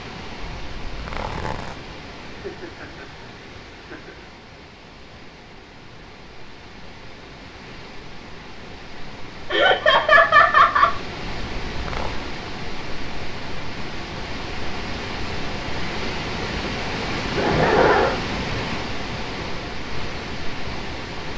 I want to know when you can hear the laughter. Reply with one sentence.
You can hear the laughter from 2.2 to 3.0 s, from 3.8 to 4.2 s, from 9.5 to 10.9 s and from 17.4 to 18.2 s.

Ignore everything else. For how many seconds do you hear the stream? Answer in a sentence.
You can hear the stream for 21 seconds altogether.